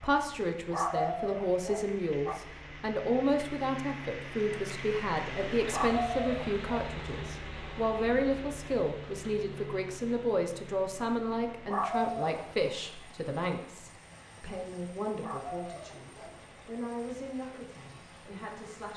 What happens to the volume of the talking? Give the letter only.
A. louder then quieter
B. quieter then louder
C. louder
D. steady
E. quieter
E.